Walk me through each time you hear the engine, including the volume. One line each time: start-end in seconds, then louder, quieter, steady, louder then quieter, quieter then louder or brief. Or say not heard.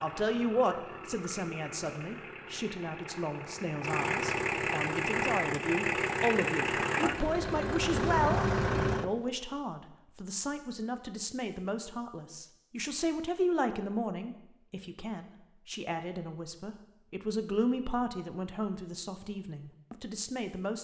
0.0-9.1 louder.